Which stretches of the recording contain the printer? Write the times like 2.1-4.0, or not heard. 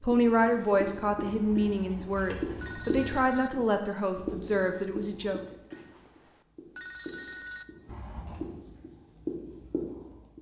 not heard.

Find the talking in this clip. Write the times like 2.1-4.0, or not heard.
0.0-5.4.